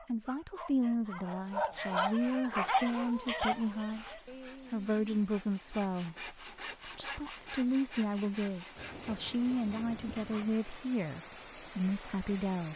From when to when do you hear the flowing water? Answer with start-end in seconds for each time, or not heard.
2.5-12.7.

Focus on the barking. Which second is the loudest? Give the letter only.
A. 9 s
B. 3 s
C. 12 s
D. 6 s
B.